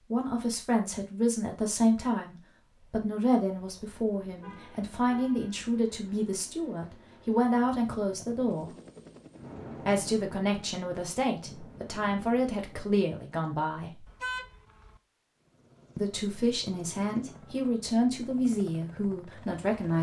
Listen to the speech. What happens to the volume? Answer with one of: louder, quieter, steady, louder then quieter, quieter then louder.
steady.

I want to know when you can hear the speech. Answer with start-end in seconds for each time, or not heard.
0.1-8.8, 9.8-14.1, 15.9-19.9.